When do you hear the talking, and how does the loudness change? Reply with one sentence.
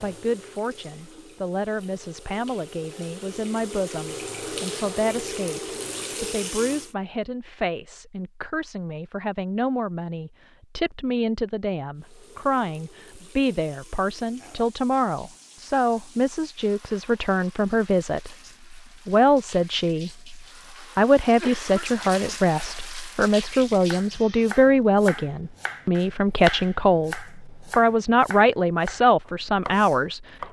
The talking can be heard from 0.0 to 30.2 s, getting louder.